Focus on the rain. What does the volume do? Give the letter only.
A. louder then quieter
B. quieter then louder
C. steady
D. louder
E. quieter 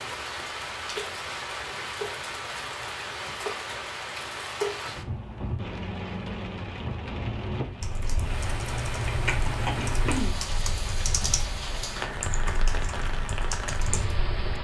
C.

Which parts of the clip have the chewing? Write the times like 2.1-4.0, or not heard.
8.2-10.2.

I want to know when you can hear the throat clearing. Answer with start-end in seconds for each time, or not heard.
9.8-10.4.